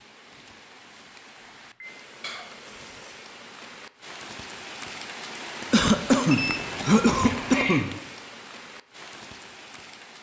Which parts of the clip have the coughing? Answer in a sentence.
You can hear the coughing from 2.2 to 3.1 s and from 5.7 to 7.9 s.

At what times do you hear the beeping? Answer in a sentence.
The beeping can be heard from 1.4 to 2.0 s and from 6.3 to 8.0 s.